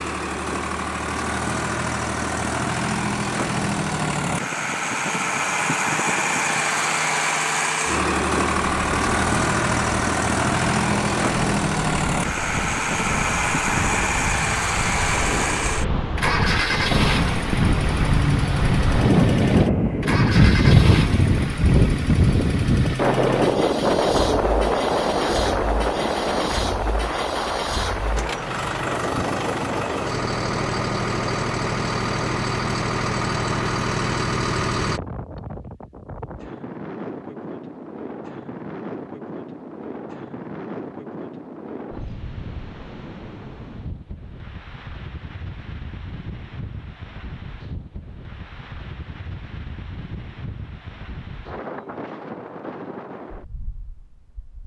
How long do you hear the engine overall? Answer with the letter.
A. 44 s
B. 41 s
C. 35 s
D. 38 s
C.